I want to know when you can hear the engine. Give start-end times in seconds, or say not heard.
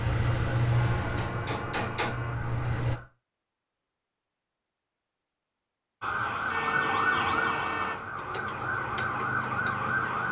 0.0-3.0.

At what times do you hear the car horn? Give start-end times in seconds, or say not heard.
0.9-2.4, 6.5-8.0.